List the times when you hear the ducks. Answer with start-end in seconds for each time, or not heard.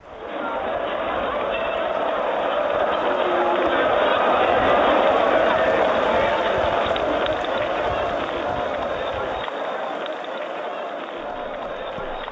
not heard.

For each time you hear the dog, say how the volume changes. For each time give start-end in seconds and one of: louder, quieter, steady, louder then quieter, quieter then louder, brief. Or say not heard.
not heard.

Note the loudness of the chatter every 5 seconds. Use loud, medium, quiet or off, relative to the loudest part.
loud, loud, medium.